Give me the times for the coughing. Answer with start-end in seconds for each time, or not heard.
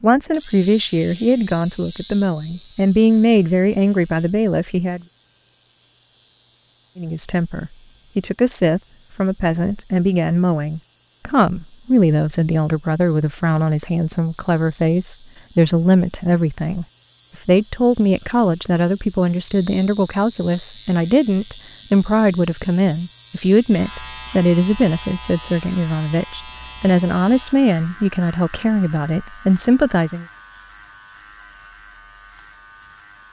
not heard.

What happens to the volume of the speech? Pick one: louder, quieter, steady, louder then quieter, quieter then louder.
steady.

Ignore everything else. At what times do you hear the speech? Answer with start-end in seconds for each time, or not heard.
0.0-5.0, 7.0-16.9, 17.4-30.2.